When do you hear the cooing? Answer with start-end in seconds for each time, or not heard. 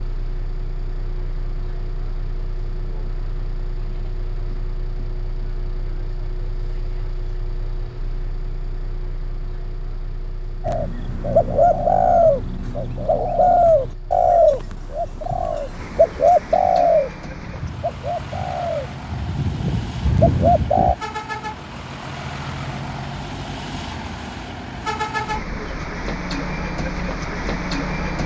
10.7-20.9.